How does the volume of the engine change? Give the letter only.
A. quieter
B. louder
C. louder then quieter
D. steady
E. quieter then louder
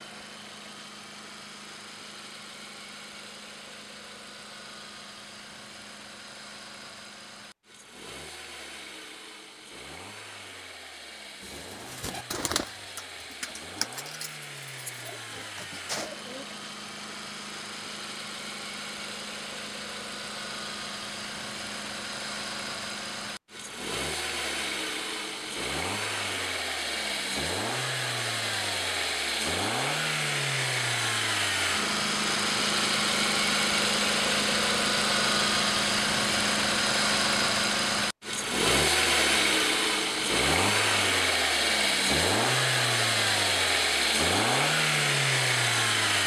B.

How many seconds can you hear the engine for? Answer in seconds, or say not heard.
46 s.